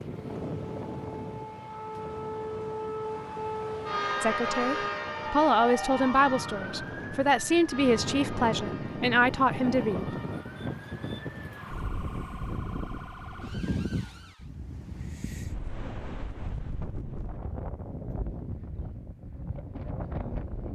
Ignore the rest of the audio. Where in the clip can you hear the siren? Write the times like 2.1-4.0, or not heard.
0.0-14.5.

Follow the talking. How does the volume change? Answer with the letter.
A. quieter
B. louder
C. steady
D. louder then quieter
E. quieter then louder
C.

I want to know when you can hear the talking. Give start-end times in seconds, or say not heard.
4.2-10.1.